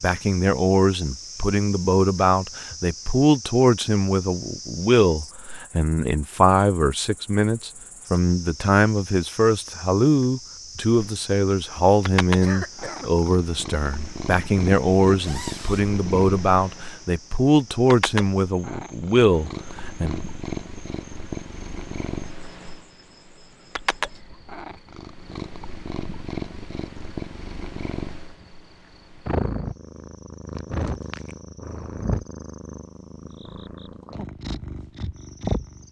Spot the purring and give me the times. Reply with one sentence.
You can hear the purring from 10.9 to 35.8 s.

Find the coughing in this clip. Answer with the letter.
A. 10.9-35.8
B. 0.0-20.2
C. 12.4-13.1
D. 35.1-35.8
C.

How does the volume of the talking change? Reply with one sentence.
The volume of the talking stays about the same.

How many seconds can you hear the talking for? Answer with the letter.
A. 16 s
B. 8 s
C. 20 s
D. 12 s
C.